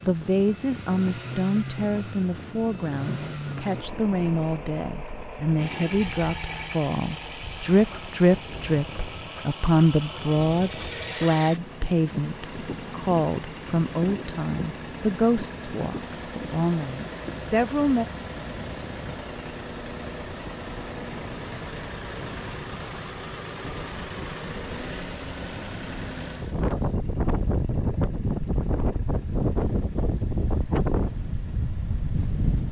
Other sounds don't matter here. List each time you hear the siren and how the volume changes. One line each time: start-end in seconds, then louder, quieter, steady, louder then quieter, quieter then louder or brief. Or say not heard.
not heard.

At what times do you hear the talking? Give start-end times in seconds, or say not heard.
0.1-18.1.